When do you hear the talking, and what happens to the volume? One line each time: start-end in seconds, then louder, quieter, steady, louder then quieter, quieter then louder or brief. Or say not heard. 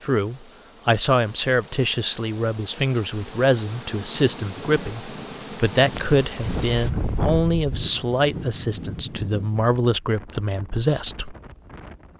0.0-11.3 steady.